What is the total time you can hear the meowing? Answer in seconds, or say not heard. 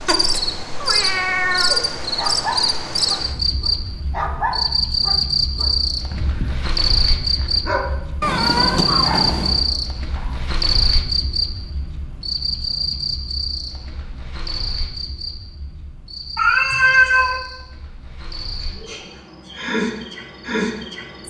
4 s.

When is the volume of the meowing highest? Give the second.
17 s.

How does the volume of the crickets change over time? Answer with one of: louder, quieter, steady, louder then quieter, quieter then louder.
quieter.